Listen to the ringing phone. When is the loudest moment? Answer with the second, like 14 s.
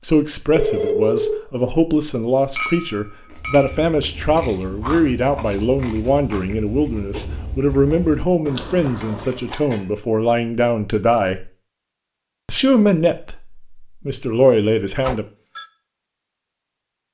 1 s.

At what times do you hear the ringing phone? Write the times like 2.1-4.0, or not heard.
0.5-1.4, 15.0-15.7.